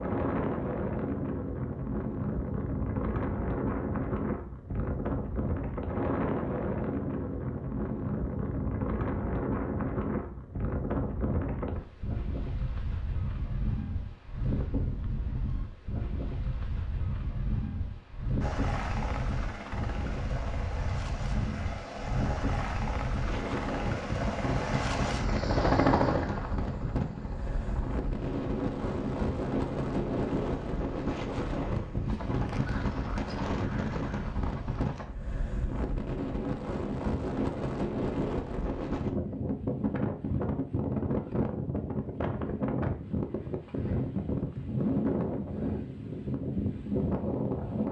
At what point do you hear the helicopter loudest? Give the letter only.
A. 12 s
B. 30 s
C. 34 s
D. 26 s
D.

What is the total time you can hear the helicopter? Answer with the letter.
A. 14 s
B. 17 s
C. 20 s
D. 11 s
B.